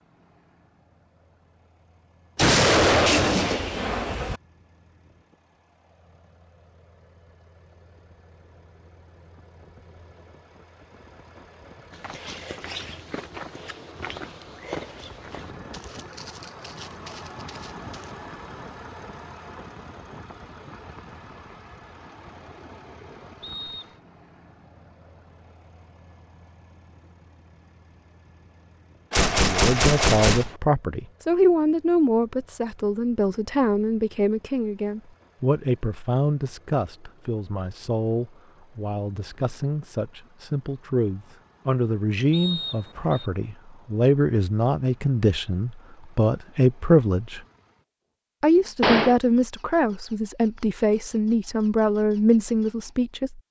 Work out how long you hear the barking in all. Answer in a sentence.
The barking can't be heard in this clip.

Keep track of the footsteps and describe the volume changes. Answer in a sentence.
The volume of the footsteps goes down.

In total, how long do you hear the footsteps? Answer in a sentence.
The footsteps can be heard for 6 seconds in total.